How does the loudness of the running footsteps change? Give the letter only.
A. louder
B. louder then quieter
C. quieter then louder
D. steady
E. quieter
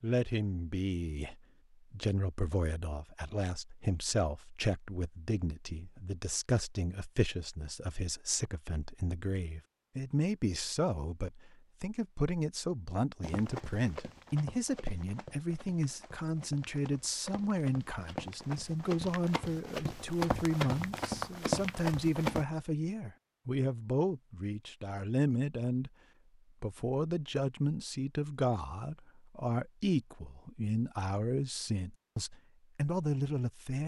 C.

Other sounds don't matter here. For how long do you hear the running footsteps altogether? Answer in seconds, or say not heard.
9 s.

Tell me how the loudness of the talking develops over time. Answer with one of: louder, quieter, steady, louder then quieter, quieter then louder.
steady.